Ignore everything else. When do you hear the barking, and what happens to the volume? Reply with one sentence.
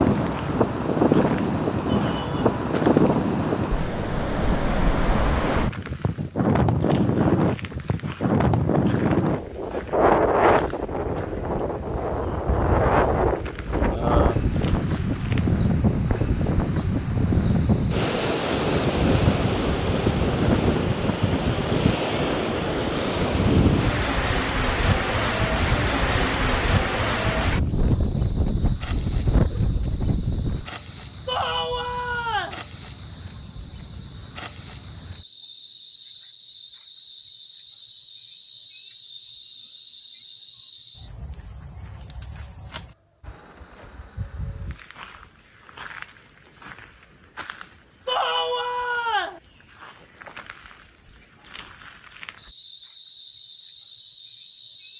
You can't hear the barking here.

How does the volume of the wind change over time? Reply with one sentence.
The loudness of the wind stays about the same.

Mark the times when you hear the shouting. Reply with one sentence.
You can hear the shouting from 1.9 to 2.5 s, from 31.2 to 32.6 s and from 48.0 to 49.4 s.